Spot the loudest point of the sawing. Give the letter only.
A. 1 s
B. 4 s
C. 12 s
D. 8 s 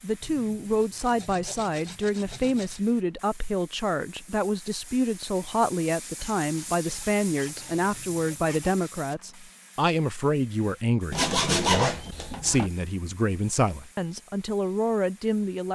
C.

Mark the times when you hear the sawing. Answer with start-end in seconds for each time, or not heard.
0.2-2.9, 6.2-8.8, 11.1-12.7.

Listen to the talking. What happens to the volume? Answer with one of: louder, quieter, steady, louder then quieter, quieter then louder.
steady.